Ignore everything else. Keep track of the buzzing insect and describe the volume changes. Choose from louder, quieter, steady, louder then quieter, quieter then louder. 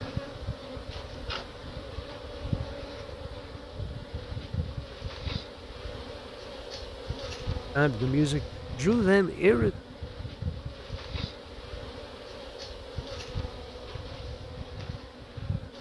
steady.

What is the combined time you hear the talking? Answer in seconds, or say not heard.
2 s.